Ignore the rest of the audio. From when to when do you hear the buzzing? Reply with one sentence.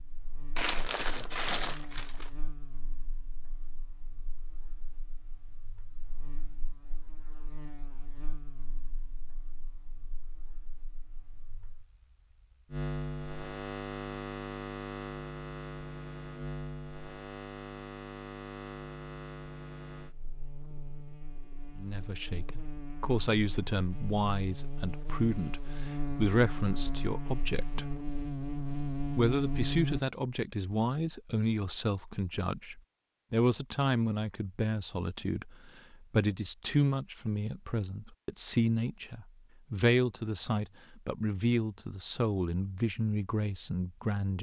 You can hear the buzzing from 0.0 to 30.0 s.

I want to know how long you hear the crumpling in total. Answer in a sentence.
You can hear the crumpling for 2 seconds altogether.